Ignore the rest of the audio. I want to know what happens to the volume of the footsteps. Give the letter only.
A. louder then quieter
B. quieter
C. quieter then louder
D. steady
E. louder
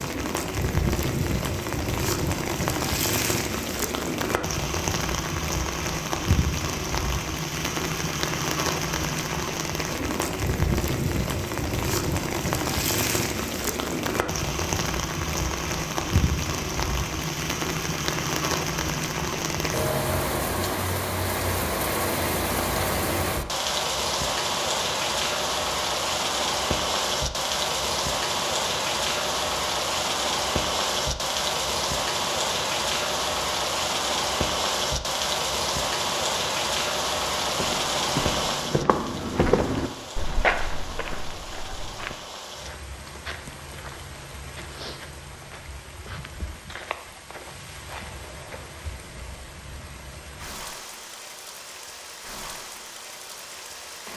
B.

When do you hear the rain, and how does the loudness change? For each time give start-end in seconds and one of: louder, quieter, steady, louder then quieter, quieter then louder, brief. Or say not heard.
0.0-54.1 quieter.